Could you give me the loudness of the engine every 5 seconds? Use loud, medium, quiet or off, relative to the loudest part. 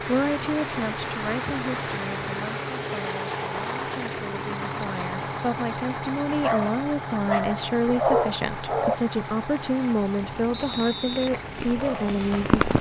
loud, loud, medium.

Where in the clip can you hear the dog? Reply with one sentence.
The dog can be heard from 6.4 to 8.9 s and from 11.3 to 12.7 s.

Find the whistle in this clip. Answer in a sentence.
The whistle can be heard from 10.5 to 11.3 s.